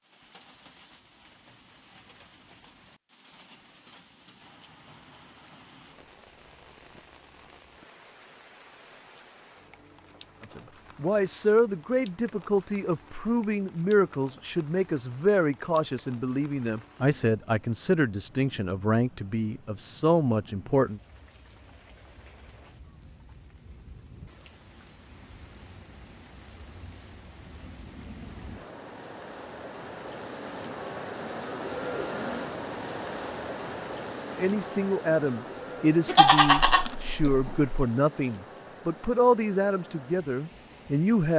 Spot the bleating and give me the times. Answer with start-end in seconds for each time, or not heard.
36.0-37.7.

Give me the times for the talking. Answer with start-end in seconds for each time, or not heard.
10.5-21.0, 34.4-41.3.